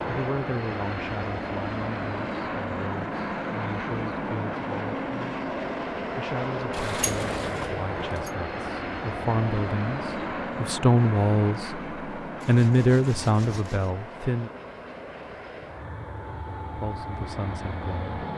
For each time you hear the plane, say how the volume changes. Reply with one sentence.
You can hear the plane from 0.0 to 18.3 s, getting quieter.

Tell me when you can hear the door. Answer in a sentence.
The door can be heard from 6.7 to 8.3 s.